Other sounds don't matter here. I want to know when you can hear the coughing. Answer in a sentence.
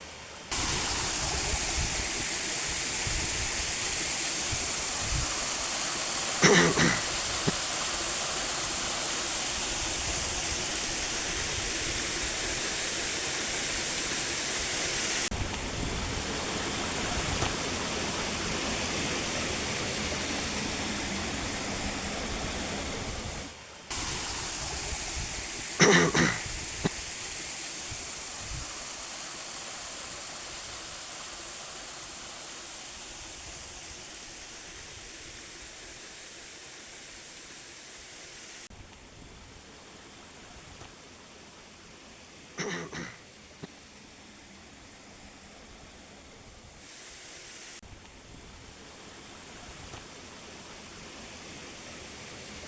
You can hear the coughing from 6.4 to 7.5 s, from 25.8 to 26.9 s and from 42.5 to 43.7 s.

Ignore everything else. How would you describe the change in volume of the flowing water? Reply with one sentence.
The loudness of the flowing water goes down.